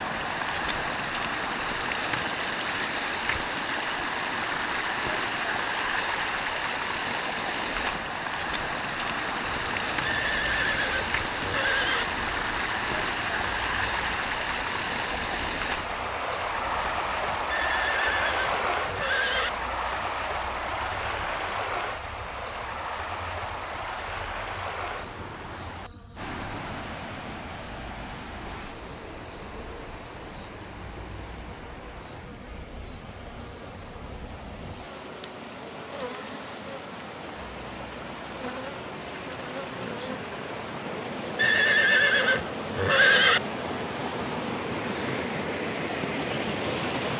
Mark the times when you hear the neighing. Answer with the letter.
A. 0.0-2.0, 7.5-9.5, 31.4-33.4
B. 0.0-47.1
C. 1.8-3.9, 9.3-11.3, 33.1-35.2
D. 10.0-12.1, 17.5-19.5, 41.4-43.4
D.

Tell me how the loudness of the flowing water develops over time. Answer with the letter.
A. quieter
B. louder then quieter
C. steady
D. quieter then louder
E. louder
D.